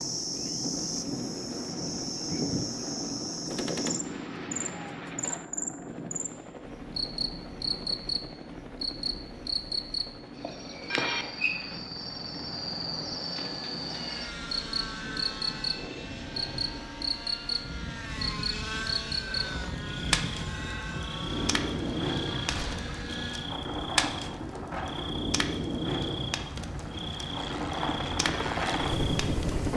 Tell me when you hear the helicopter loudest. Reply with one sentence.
The volume of the helicopter peaks at 29 seconds.